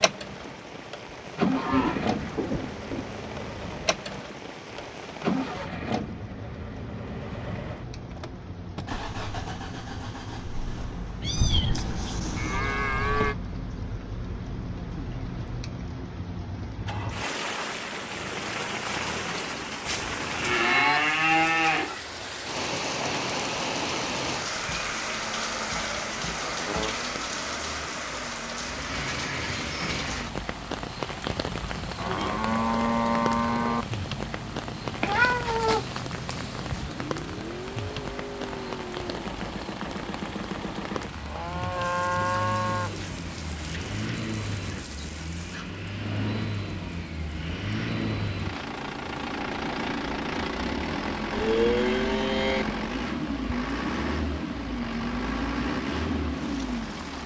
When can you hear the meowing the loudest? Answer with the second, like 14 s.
35 s.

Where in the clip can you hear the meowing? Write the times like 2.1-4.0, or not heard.
11.2-12.8, 35.0-36.9.